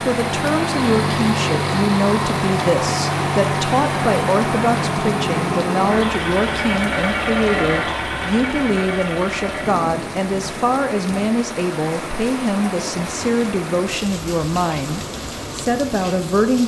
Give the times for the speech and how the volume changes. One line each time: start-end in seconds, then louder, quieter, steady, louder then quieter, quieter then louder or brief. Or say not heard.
0.0-16.6 steady.